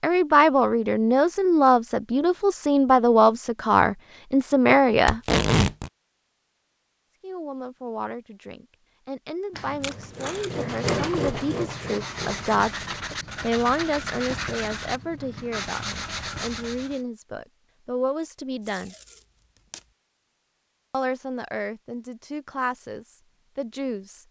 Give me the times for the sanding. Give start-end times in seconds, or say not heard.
9.5-17.0.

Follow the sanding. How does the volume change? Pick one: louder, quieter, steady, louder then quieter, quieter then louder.
louder.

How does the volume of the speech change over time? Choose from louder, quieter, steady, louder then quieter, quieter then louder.
quieter.